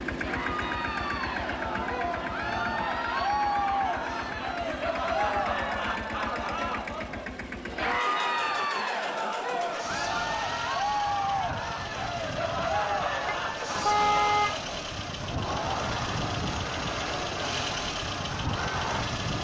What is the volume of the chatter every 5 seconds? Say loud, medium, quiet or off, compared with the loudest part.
loud, loud, loud, medium.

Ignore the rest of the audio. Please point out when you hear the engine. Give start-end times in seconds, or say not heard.
0.0-19.3.